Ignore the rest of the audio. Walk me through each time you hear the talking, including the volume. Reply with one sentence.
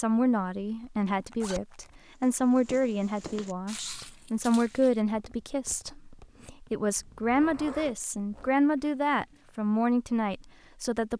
The talking can be heard from 0.0 to 11.1 s, at a steady volume.